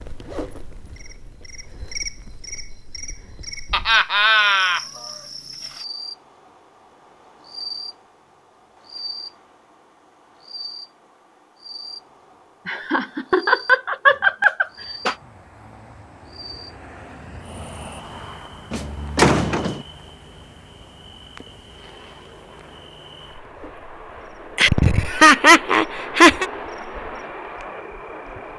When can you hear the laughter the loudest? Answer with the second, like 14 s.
25 s.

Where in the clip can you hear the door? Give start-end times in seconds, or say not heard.
18.7-19.9.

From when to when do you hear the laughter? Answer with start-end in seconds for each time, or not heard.
3.7-4.8, 12.7-15.2, 24.6-26.4.